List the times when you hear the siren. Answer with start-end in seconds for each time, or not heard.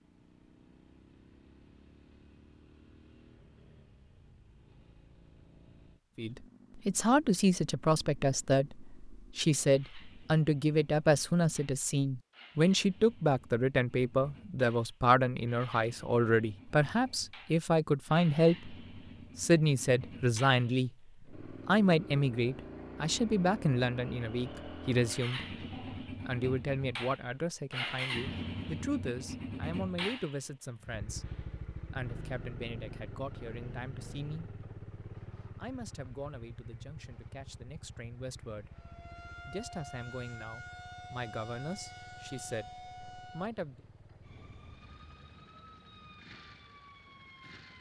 38.7-47.7.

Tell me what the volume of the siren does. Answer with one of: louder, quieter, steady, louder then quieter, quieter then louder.
quieter.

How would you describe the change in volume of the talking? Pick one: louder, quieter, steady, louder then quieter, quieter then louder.
quieter.